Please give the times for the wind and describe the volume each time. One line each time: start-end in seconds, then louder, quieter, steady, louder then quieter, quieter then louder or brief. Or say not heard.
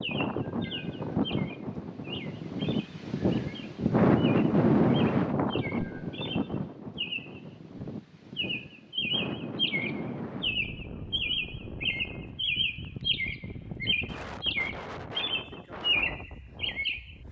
0.0-17.2 louder then quieter.